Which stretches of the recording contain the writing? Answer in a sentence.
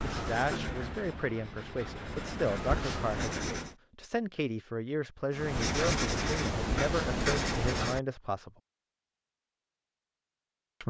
You can hear the writing from 0.0 to 3.8 s and from 5.3 to 8.0 s.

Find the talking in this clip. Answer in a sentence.
The talking can be heard from 0.0 to 8.5 s.